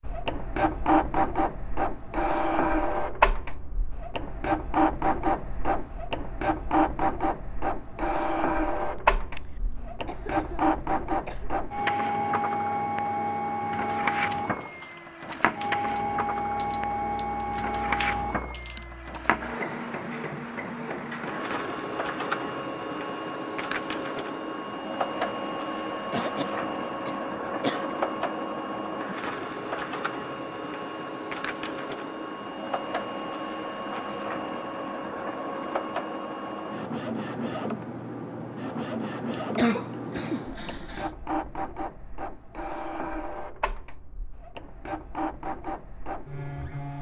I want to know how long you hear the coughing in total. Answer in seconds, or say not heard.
6 s.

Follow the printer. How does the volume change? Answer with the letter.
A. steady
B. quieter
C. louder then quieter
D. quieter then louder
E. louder
B.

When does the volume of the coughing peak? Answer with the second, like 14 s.
40 s.